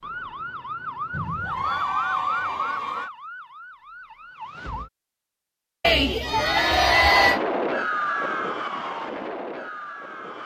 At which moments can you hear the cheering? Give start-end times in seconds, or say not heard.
1.1-3.1, 5.8-7.4.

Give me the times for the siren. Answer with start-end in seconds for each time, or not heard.
0.0-4.9, 7.0-10.4.